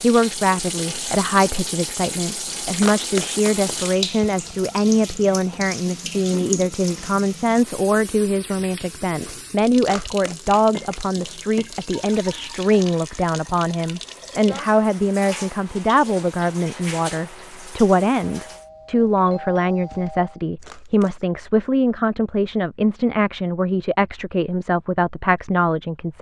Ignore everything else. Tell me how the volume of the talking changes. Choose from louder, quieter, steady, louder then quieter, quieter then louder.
steady.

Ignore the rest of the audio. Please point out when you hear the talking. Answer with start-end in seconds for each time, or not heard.
0.0-26.1.